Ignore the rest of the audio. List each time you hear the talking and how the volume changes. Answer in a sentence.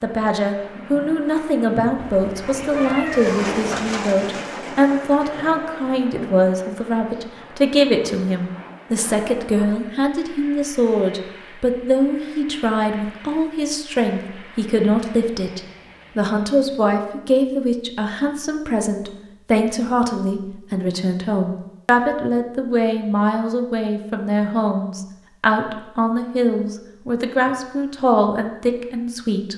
You can hear the talking from 0.0 to 29.5 s, at a steady volume.